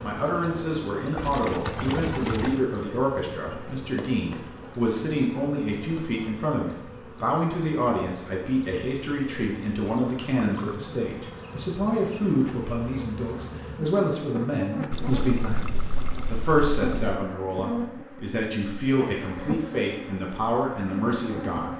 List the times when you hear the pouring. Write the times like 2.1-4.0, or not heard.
1.1-2.6, 10.3-10.8, 14.9-17.0.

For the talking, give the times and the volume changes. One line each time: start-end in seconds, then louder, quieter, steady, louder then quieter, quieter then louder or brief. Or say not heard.
0.0-21.7 steady.